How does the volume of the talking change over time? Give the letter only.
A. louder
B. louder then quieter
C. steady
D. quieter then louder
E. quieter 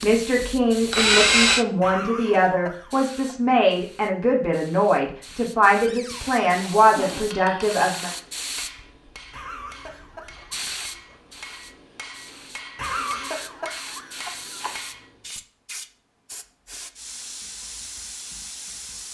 C.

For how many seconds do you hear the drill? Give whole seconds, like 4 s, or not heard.
2 s.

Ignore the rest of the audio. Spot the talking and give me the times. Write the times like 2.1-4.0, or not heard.
0.0-8.1.